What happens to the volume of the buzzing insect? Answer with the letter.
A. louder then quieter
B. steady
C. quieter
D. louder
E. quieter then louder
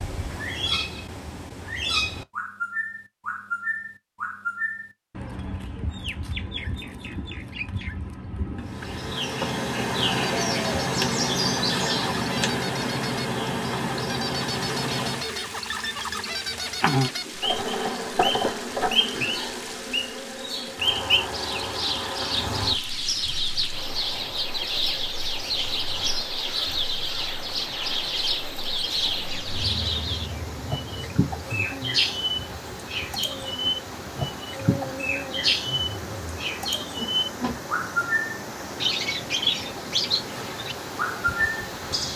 C.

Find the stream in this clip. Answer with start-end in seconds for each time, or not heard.
14.5-42.1.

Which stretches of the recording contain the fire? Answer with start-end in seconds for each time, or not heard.
not heard.